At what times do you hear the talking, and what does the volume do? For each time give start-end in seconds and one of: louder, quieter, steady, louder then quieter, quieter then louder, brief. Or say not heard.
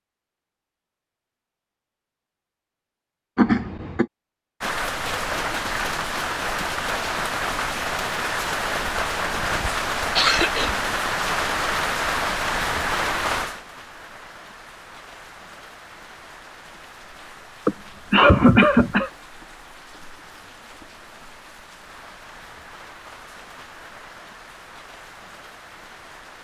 not heard.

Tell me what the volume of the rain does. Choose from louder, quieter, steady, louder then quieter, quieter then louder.
quieter.